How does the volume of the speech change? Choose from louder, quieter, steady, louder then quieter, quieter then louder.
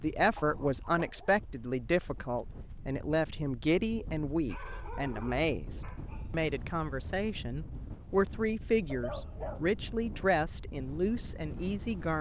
steady.